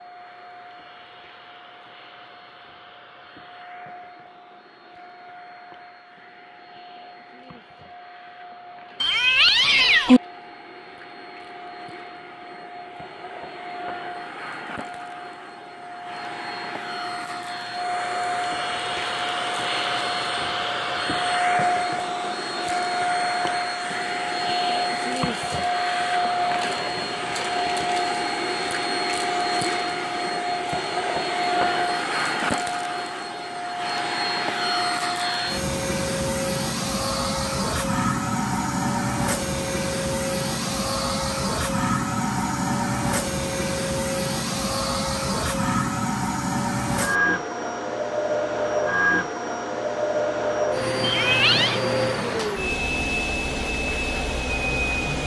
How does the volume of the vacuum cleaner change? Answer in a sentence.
The loudness of the vacuum cleaner goes up.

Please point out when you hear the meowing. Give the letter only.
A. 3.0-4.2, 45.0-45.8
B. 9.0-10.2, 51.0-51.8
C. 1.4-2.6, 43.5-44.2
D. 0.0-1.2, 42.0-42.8
B.